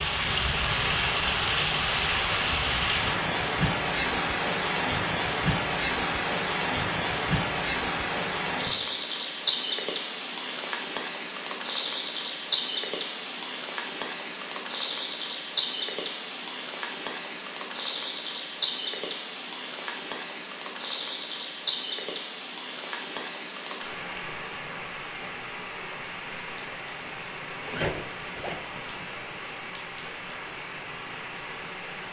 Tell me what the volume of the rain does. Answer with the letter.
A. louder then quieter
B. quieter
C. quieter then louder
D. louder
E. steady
B.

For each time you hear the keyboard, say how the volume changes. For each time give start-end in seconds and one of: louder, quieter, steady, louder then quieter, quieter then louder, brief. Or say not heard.
not heard.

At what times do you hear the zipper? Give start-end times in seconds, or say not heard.
27.6-29.0.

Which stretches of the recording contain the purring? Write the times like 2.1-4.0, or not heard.
not heard.